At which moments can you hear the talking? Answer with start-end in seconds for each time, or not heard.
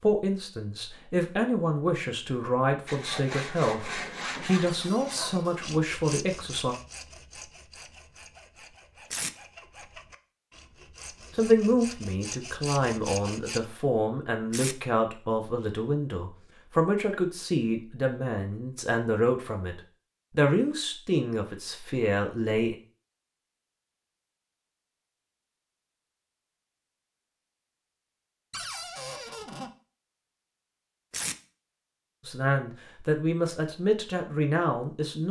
0.0-6.8, 11.3-22.8, 32.2-35.2.